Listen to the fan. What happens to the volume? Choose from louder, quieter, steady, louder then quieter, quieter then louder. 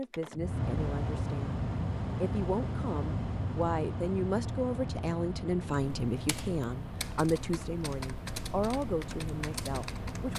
quieter.